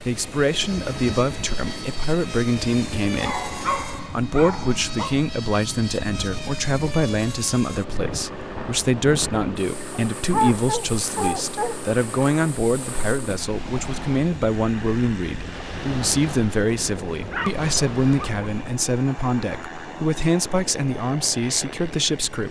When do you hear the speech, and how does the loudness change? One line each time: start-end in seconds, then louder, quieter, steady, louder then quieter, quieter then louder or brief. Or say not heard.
0.0-22.4 steady.